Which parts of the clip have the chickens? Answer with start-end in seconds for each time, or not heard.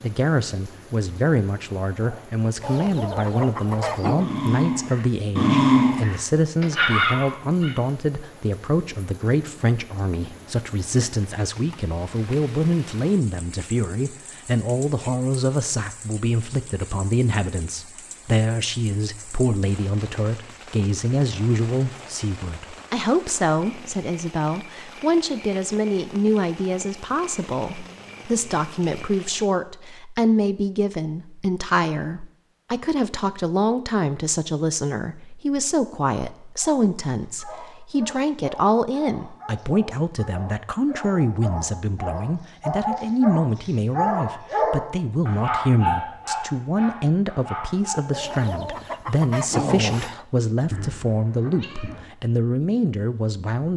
2.6-4.2, 48.1-50.2.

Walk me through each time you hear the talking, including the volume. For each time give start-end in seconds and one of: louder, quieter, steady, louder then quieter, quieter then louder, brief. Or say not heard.
0.0-53.7 steady.